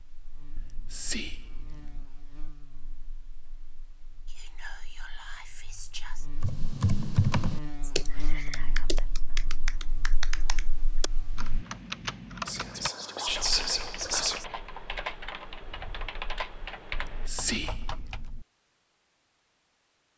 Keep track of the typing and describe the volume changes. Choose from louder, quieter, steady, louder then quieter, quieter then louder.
quieter.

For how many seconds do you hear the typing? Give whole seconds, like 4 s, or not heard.
12 s.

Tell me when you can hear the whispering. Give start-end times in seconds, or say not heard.
0.6-2.0, 4.3-6.2, 8.0-9.5, 12.4-14.4, 16.9-18.4.